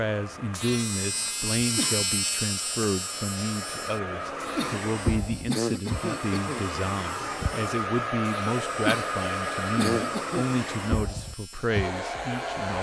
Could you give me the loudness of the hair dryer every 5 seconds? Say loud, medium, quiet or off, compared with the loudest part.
medium, loud, loud.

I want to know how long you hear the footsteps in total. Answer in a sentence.
The footsteps can't be heard in this clip.